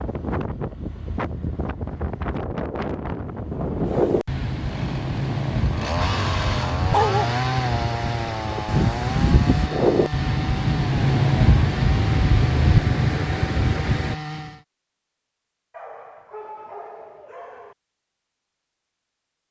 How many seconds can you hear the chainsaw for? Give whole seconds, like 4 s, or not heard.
10 s.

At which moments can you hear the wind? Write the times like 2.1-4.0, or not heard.
0.0-14.2.